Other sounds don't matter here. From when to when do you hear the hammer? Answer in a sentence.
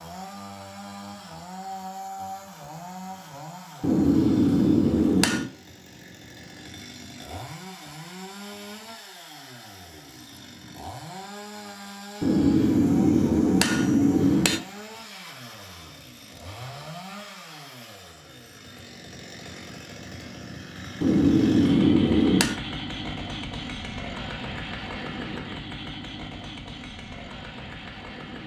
You can hear the hammer from 3.8 to 5.5 s, from 12.2 to 14.6 s and from 21.0 to 22.6 s.